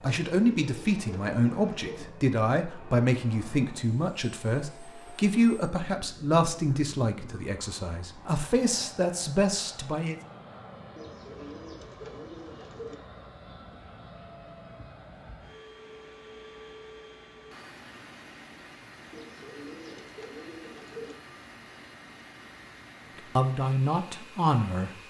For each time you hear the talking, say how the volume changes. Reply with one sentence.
You can hear the talking from 0.0 to 10.2 s, at a steady volume; and briefly from 23.1 to 24.9 s.